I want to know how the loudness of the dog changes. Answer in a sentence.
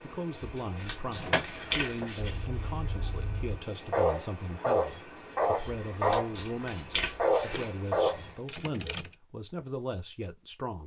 The volume of the dog goes up.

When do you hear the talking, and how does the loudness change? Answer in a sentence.
The talking can be heard from 0.0 to 10.8 s, at a steady volume.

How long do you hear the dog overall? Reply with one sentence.
You can hear the dog for 6 seconds altogether.